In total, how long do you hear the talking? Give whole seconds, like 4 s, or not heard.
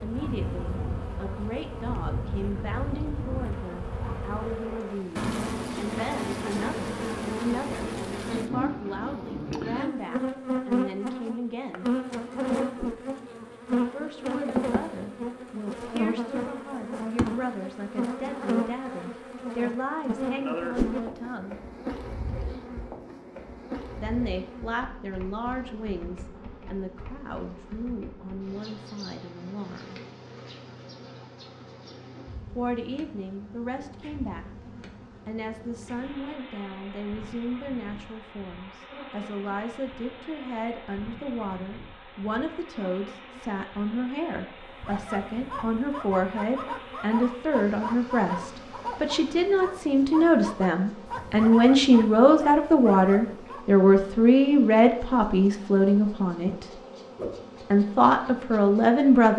51 s.